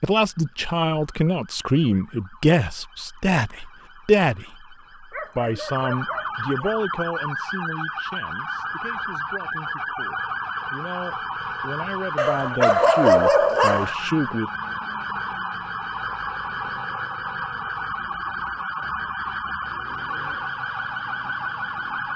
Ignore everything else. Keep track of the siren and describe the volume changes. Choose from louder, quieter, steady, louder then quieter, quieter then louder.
louder.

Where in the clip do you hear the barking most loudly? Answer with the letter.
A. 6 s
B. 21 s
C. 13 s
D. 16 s
C.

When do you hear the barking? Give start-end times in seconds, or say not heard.
5.1-6.7, 12.2-13.9.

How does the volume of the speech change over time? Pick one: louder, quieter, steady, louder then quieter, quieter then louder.
quieter then louder.